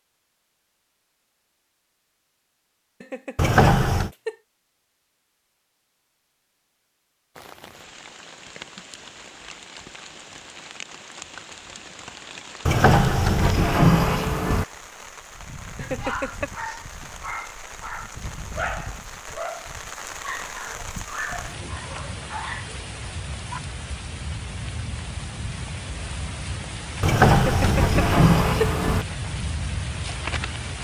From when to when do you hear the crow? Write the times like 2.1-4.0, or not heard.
not heard.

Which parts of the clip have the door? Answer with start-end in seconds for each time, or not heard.
3.4-4.1, 12.7-14.7, 27.0-29.1.